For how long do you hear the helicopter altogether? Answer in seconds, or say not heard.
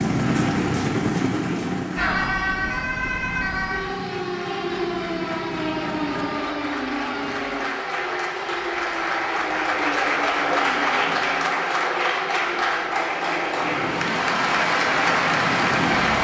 9 s.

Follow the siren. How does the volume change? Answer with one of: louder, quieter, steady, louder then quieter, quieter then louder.
quieter.